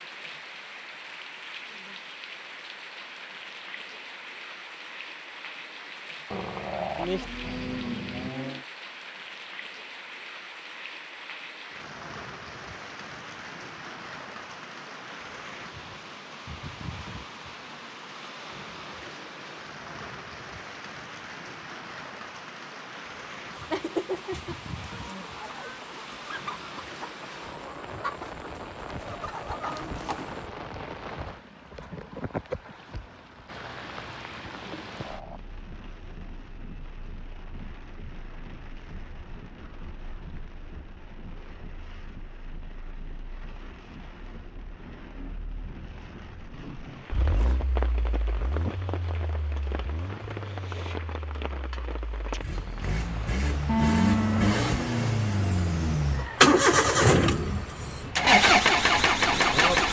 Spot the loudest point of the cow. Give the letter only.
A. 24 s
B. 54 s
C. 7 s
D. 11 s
B.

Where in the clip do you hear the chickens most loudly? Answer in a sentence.
The loudest moment of the chickens is at 24 seconds.